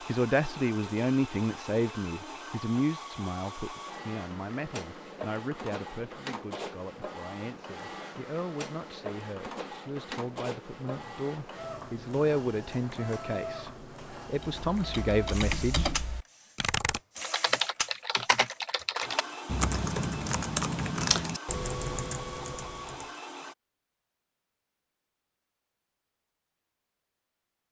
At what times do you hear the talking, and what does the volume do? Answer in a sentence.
The talking can be heard from 0.1 to 15.9 s, getting quieter then louder.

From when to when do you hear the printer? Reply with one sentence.
You can hear the printer from 0.0 to 23.6 s.